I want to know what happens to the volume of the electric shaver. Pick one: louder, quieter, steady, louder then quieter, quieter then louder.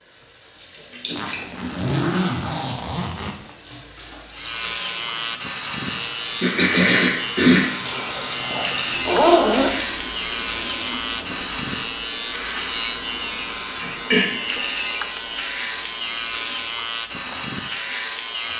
steady.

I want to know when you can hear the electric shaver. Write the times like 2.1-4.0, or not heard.
4.3-18.5.